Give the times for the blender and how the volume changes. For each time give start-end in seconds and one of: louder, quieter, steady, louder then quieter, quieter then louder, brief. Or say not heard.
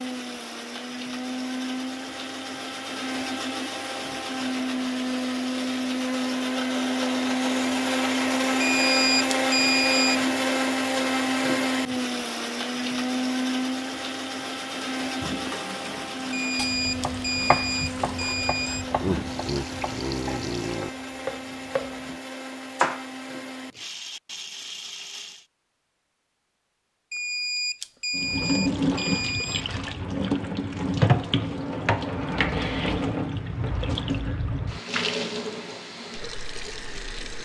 0.0-25.4 louder then quieter.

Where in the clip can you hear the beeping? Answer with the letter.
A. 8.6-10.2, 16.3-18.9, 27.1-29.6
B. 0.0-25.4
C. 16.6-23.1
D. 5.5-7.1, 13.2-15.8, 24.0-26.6
A.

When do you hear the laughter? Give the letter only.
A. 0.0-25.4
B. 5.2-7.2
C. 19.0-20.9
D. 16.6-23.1
C.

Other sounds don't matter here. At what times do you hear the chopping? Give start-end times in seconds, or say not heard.
16.6-23.1.